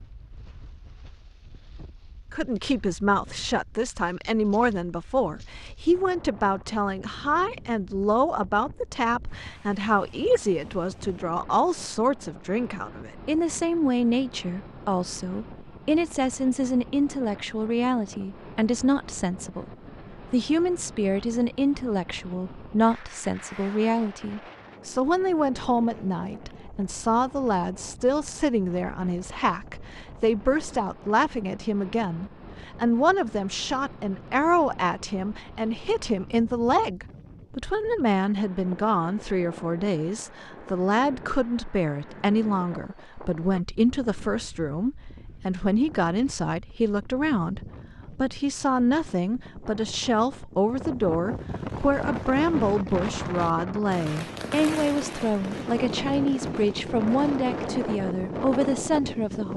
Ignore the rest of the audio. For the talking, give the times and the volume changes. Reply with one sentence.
You can hear the talking from 2.3 to 19.7 s, at a steady volume; and from 20.3 to 59.5 s, at a steady volume.